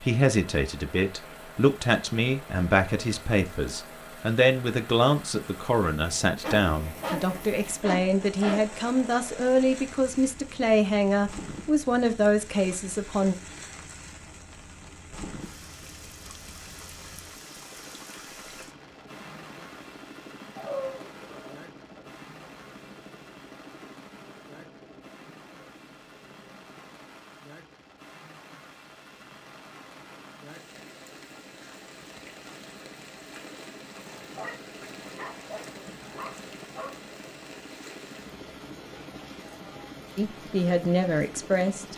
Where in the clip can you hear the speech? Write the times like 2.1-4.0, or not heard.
0.0-13.3, 40.1-41.9.